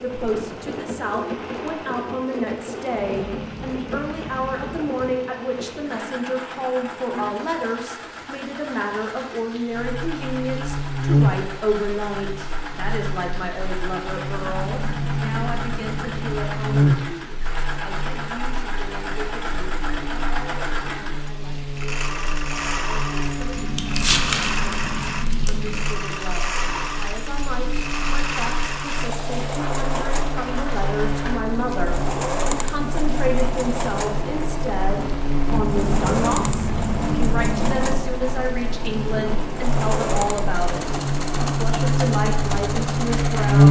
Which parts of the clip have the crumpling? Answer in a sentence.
You can hear the crumpling from 23.8 to 25.6 s.